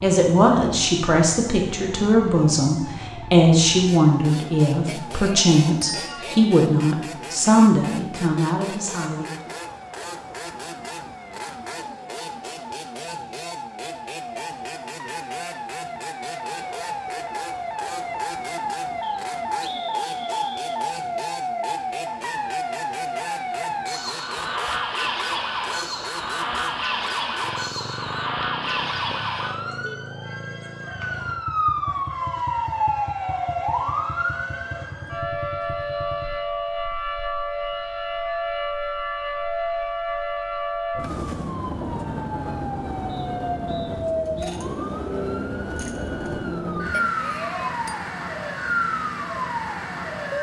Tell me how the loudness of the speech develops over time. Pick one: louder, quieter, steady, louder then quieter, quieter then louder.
steady.